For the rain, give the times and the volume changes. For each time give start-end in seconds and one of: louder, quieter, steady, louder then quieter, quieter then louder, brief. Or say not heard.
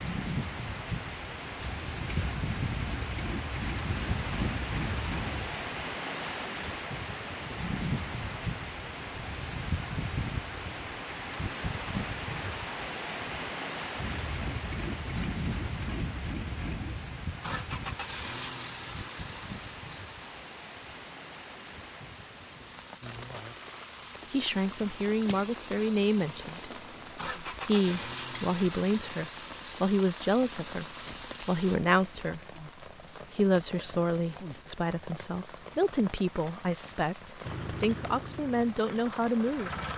0.0-39.9 quieter.